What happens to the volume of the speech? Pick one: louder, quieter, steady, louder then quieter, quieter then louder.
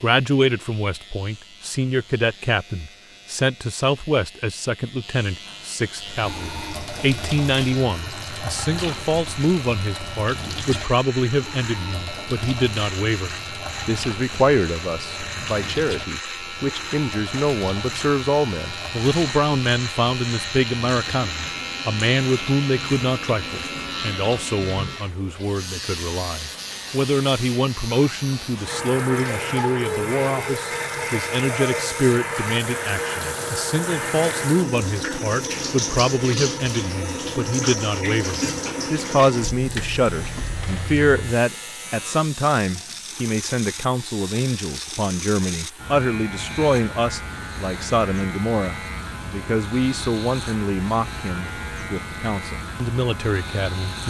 steady.